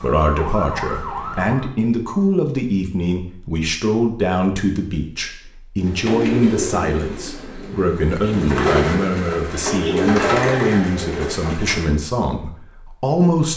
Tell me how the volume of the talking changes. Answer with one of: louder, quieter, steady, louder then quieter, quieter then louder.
steady.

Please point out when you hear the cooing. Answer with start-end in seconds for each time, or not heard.
5.8-11.9.